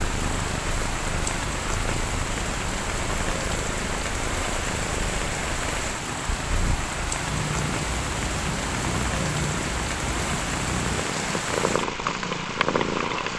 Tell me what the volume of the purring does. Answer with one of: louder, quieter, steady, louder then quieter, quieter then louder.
louder.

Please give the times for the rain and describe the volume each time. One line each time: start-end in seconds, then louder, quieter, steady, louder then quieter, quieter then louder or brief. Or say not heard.
0.0-13.3 steady.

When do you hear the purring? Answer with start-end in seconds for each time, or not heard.
0.0-13.3.